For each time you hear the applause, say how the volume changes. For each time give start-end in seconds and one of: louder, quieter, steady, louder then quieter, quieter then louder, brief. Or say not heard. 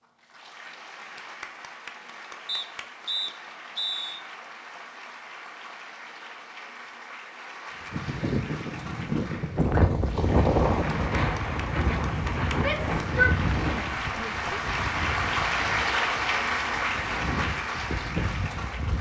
0.0-18.9 louder.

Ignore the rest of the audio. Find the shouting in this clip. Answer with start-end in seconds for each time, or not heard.
12.6-14.5.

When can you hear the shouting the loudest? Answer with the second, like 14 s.
13 s.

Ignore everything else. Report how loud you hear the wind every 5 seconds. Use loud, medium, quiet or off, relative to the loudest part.
off, loud, loud, medium.